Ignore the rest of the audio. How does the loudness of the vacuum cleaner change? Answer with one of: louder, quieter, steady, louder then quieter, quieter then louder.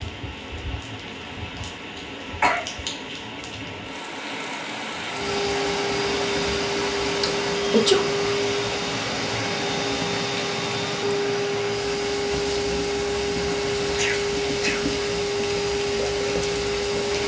steady.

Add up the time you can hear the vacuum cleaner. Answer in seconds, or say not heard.
12 s.